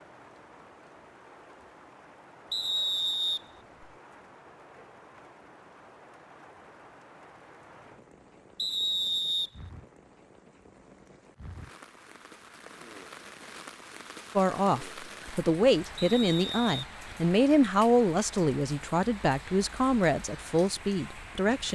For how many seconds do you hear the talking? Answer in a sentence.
The talking can be heard for 7 seconds in total.